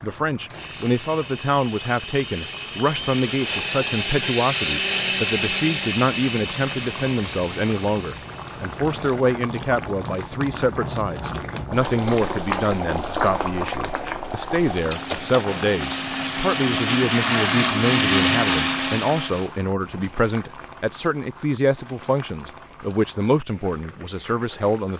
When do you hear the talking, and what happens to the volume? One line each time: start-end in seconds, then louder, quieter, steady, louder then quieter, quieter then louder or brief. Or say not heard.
0.0-24.9 steady.